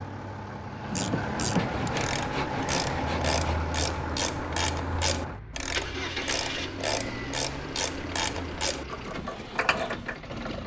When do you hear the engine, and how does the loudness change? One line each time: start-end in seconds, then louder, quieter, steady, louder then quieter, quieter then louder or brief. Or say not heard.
0.0-10.6 quieter.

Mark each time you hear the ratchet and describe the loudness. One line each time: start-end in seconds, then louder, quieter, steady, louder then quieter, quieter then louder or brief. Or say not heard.
0.9-10.2 steady.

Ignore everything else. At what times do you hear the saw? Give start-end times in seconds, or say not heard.
1.6-3.6.